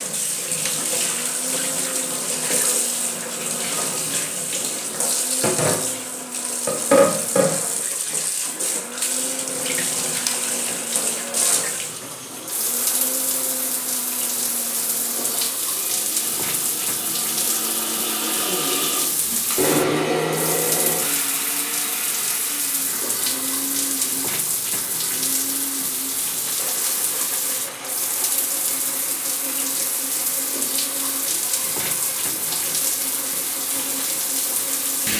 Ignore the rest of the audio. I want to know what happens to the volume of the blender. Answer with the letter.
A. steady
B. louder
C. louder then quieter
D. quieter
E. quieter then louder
C.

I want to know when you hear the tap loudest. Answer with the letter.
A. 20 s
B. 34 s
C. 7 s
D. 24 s
C.